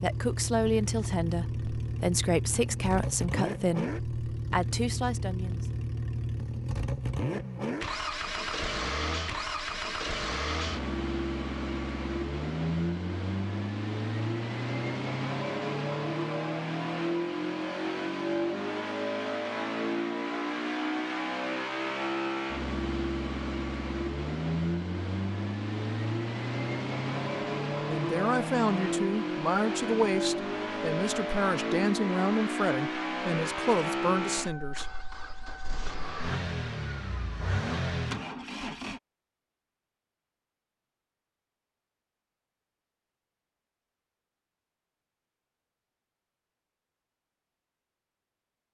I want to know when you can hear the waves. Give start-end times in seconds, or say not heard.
not heard.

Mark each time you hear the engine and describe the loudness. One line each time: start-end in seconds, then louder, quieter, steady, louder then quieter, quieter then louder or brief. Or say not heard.
0.0-39.0 steady.